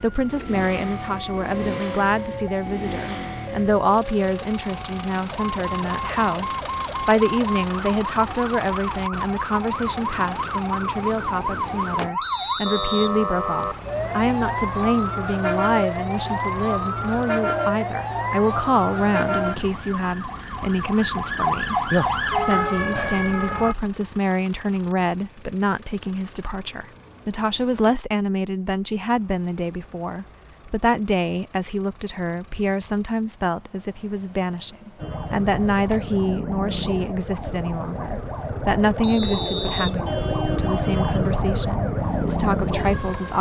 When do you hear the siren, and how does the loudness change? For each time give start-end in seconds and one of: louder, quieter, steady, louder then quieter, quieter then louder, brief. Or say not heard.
0.0-23.8 louder
35.0-43.3 louder.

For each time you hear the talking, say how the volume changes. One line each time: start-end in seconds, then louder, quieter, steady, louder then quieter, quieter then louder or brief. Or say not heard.
0.0-43.3 steady.